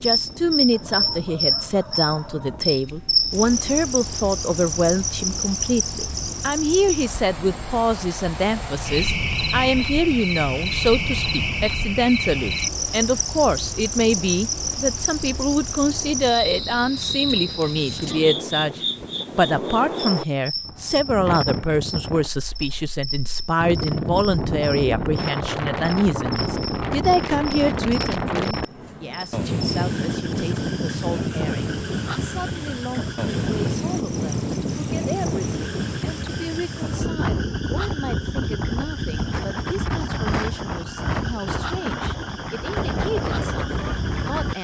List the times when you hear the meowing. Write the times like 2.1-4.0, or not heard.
not heard.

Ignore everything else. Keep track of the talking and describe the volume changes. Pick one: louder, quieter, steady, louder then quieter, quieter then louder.
quieter.